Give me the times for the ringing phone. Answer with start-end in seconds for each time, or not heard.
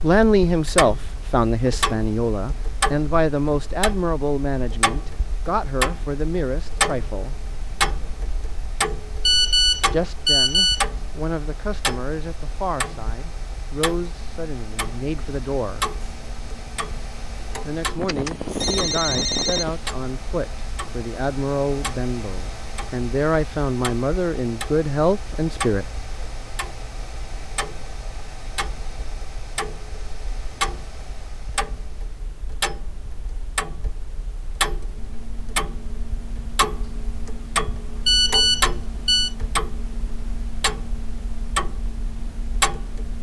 9.2-10.8, 18.0-19.6, 38.0-39.3.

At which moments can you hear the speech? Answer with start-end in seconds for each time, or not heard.
0.0-7.3, 9.9-15.8, 17.6-25.9.